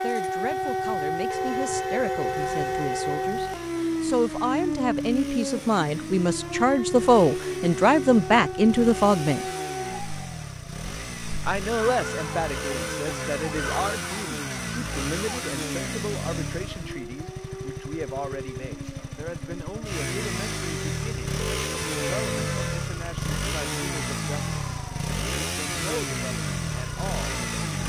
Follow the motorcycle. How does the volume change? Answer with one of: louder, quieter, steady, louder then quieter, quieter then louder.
louder.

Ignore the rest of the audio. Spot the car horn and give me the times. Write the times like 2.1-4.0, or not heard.
1.3-3.3, 12.0-13.8, 21.4-22.9.